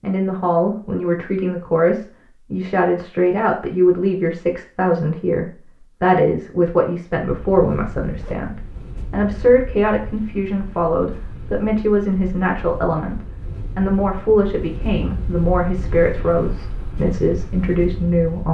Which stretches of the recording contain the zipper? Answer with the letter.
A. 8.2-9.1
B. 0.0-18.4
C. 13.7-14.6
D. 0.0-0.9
A.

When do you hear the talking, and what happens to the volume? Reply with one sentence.
The talking can be heard from 0.0 to 18.4 s, at a steady volume.